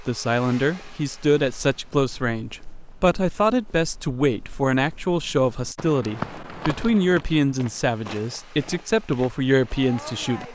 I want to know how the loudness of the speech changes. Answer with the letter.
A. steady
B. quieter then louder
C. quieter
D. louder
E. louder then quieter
A.